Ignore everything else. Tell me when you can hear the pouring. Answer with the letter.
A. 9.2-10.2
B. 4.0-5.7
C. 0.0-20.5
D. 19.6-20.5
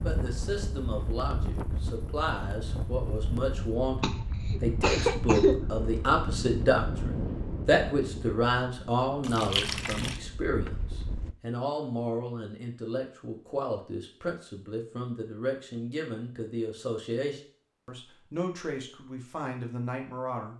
A.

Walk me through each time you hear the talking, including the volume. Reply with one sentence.
The talking can be heard from 0.0 to 20.5 s, getting louder then quieter.